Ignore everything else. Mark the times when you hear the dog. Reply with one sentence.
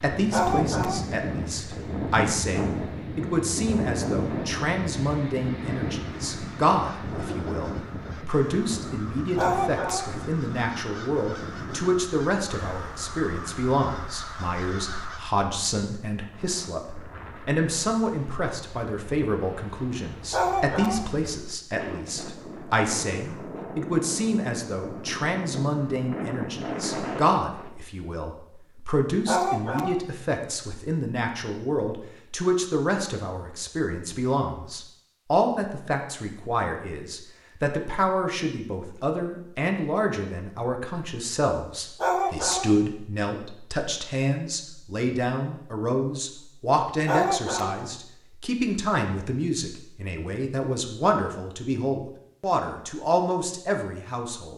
The dog can be heard from 0.3 to 1.1 s, from 9.3 to 10.1 s, from 20.3 to 21.1 s, from 29.2 to 30.0 s, from 42.0 to 42.8 s and from 47.0 to 47.8 s.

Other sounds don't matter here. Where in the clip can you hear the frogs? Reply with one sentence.
You can't hear the frogs here.